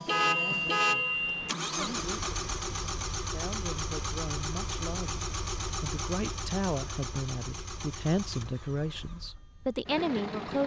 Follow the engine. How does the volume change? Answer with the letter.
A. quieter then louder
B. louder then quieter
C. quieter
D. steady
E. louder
C.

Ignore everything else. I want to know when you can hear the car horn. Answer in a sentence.
You can hear the car horn from 0.1 to 1.6 s.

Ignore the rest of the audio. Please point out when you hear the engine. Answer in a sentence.
The engine can be heard from 0.0 to 10.6 s.